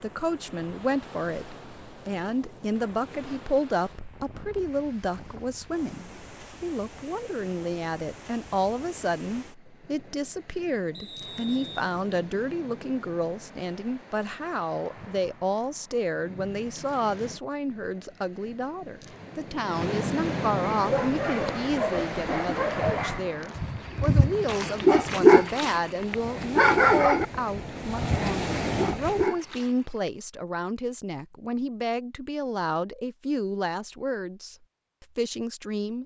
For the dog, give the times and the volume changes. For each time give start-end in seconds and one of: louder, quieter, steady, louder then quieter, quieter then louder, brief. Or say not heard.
20.8-30.1 louder then quieter.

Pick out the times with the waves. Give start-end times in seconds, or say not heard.
0.0-29.2.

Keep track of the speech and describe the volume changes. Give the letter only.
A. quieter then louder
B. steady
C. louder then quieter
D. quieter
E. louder
B.